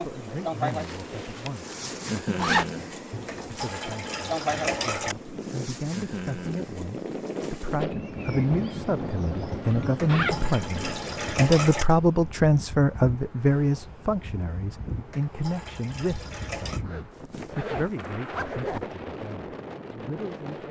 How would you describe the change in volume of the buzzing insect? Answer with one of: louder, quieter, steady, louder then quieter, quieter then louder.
quieter.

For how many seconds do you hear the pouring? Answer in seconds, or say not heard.
6 s.